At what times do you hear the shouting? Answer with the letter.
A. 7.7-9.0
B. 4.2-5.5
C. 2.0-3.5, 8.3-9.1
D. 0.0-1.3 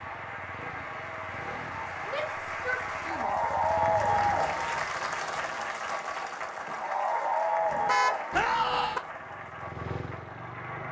C.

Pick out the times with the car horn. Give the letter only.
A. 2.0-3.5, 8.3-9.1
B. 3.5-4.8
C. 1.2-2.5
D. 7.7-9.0
D.